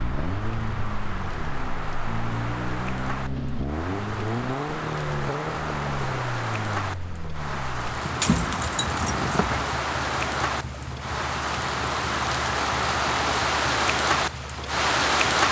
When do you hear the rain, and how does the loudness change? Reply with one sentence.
The rain can be heard from 0.0 to 15.4 s, getting louder.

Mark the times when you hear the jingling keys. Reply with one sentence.
You can hear the jingling keys from 8.2 to 9.7 s.